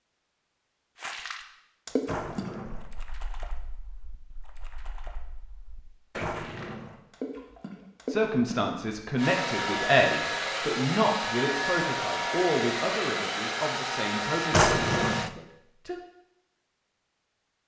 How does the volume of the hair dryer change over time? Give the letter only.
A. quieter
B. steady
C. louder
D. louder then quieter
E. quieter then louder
B.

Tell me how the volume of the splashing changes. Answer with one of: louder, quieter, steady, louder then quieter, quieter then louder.
quieter then louder.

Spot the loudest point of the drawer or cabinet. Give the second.
15 s.